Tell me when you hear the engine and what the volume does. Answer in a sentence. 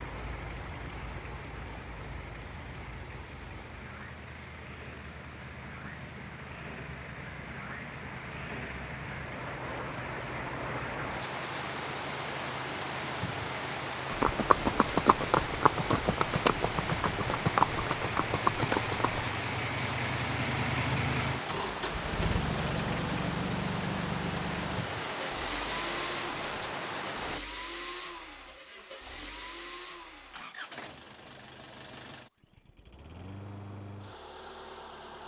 You can hear the engine from 0.0 to 35.2 s, getting louder then quieter.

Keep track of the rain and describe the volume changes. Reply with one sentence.
The loudness of the rain goes up.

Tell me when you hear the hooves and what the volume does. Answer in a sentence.
The hooves can be heard from 14.1 to 19.3 s, at a steady volume.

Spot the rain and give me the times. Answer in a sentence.
The rain can be heard from 0.0 to 27.4 s.